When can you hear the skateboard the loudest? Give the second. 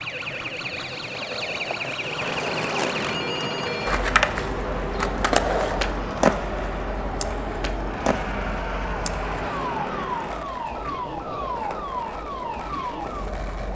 6 s.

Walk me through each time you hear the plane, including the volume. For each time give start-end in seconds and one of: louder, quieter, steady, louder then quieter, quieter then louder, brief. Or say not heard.
1.9-10.6 steady.